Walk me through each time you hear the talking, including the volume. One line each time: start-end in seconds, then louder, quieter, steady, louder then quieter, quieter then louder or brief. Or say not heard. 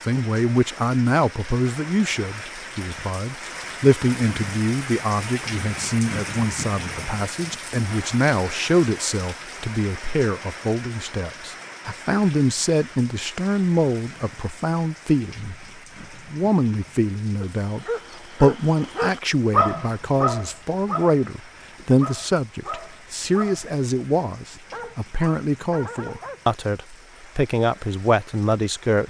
0.0-29.0 steady.